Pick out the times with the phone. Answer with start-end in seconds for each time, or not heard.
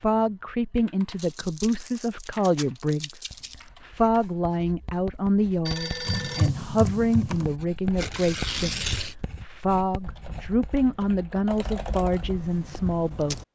5.7-6.5.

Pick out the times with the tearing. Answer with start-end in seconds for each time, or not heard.
1.1-3.6, 8.0-9.2.